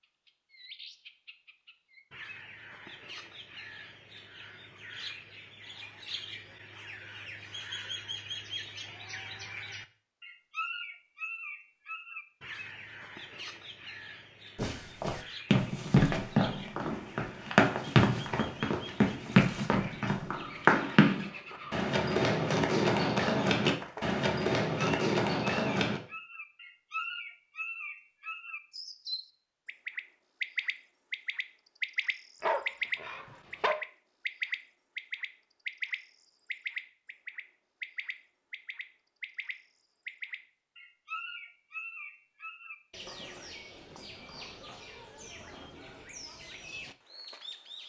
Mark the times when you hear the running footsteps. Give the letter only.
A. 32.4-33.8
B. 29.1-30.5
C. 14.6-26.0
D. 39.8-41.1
C.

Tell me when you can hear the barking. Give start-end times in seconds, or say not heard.
32.4-33.8.